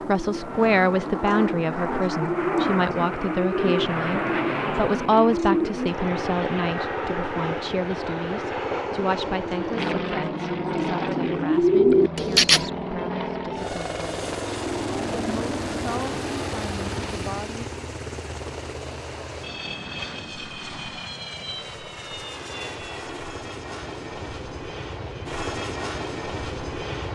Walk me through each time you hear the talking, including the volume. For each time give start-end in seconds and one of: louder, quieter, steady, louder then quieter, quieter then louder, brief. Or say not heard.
0.1-17.6 quieter.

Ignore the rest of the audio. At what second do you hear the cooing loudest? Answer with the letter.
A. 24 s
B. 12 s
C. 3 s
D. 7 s
B.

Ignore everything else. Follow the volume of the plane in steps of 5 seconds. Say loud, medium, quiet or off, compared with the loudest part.
loud, loud, loud, loud, medium, loud.